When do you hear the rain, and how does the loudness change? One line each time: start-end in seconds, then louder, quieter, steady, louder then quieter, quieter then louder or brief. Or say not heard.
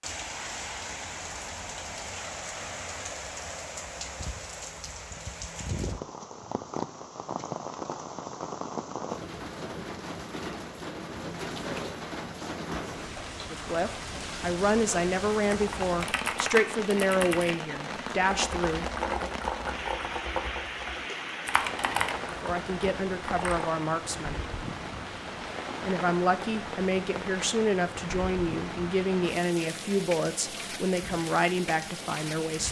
0.0-32.6 steady.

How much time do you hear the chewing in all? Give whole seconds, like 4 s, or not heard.
not heard.